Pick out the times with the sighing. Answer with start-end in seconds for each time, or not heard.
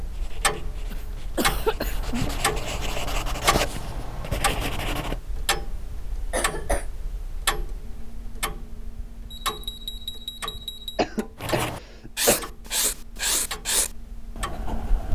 not heard.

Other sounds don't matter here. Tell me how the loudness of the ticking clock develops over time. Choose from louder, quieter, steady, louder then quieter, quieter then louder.
quieter.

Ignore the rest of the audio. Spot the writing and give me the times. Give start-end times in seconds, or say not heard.
0.1-5.2, 11.4-15.1.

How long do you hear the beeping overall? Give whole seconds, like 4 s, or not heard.
2 s.